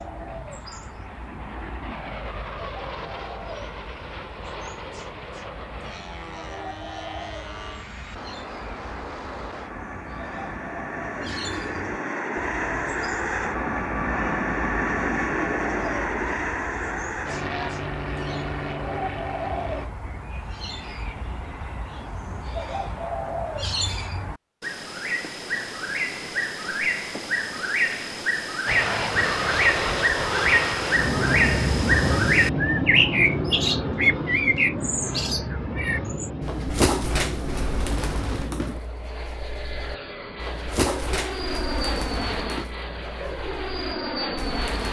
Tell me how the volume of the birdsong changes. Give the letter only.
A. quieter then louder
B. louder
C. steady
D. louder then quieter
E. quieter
D.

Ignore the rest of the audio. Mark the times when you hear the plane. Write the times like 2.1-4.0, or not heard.
0.0-19.9, 28.6-44.8.